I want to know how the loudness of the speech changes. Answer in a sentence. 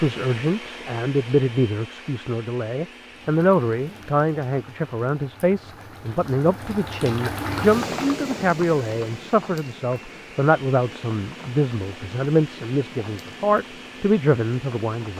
The volume of the speech stays about the same.